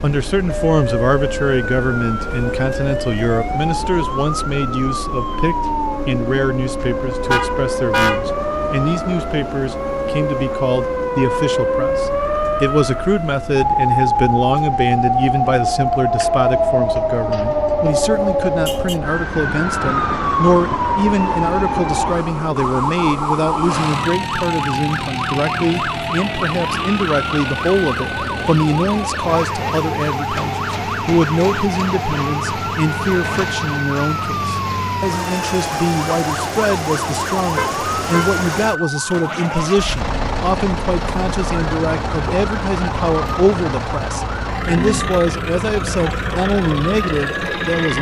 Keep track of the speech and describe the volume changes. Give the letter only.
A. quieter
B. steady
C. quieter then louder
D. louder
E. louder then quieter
B.